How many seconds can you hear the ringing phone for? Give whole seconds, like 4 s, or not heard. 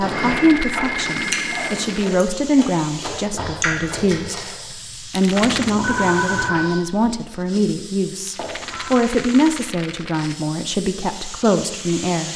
4 s.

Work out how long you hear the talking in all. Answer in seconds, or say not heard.
12 s.